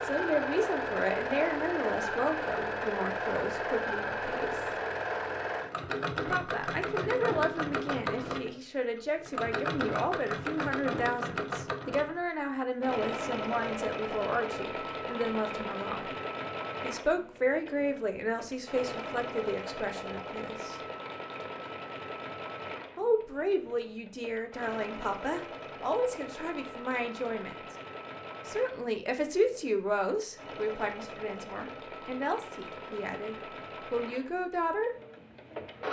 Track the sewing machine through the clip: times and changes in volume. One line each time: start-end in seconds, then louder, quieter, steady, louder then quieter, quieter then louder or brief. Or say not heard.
0.0-35.8 quieter.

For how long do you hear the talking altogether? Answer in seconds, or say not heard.
30 s.